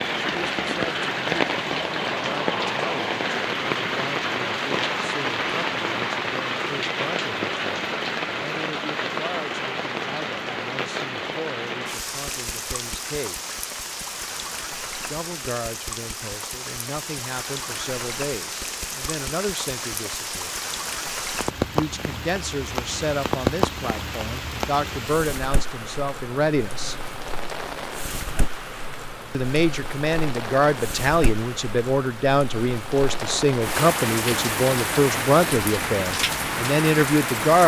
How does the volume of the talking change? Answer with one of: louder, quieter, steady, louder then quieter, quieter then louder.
louder.